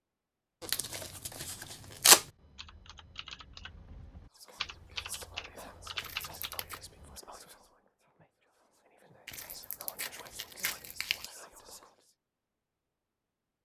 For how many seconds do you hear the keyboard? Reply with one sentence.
You can hear the keyboard for 5 seconds altogether.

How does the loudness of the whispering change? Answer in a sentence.
The volume of the whispering goes down, then up.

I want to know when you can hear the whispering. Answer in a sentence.
You can hear the whispering from 4.3 to 12.2 s.